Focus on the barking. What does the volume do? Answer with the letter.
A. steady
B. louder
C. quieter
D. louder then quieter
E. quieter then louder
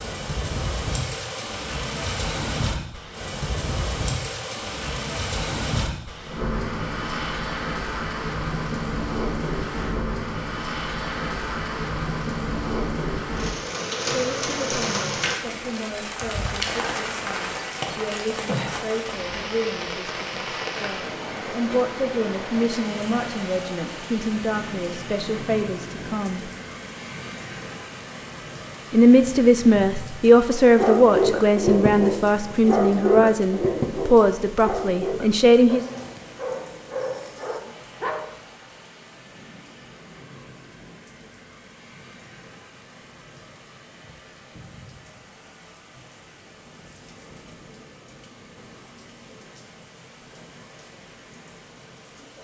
C.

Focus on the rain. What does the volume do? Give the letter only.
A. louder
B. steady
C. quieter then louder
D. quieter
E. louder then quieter
D.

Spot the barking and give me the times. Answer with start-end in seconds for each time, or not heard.
30.8-38.4.